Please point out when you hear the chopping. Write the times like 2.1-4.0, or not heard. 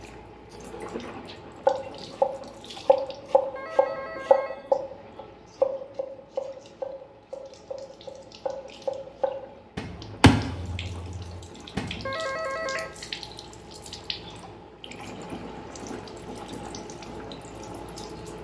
1.6-12.1.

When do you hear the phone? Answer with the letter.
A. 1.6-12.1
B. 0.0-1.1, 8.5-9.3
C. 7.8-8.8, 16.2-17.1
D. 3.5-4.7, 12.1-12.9
D.